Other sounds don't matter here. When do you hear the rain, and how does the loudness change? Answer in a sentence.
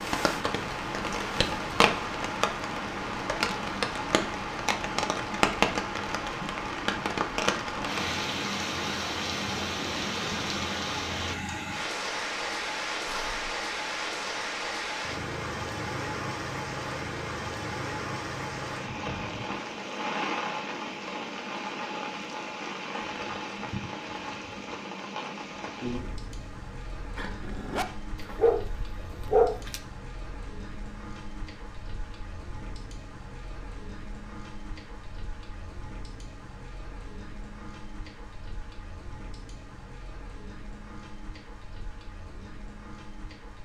You can hear the rain from 0.0 to 43.6 s, getting quieter.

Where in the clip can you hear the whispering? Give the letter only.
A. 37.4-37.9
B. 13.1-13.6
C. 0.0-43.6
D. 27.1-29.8
B.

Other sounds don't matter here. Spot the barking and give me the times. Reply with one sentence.
You can hear the barking from 27.1 to 29.8 s.